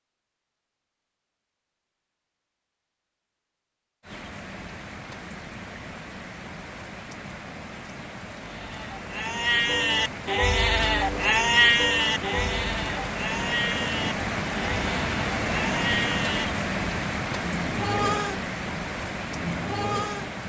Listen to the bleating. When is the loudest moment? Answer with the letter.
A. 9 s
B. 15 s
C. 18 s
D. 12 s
D.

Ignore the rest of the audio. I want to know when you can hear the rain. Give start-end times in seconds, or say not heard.
4.0-20.4.